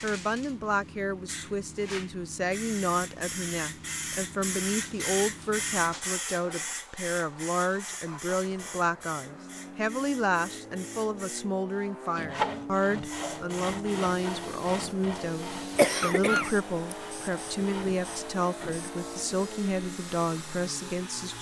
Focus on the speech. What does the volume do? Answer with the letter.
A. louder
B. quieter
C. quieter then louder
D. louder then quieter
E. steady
E.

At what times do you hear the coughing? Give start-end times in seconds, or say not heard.
15.8-16.9.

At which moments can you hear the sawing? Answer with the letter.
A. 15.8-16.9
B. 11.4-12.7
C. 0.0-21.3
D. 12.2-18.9
D.